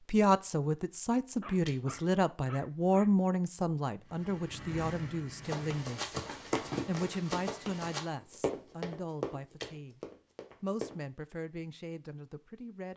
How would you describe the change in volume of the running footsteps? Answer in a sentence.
The loudness of the running footsteps goes down.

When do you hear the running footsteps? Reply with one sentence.
The running footsteps can be heard from 5.4 to 11.0 s.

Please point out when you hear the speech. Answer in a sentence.
You can hear the speech from 0.1 to 6.2 s, from 6.8 to 10.0 s and from 10.6 to 12.9 s.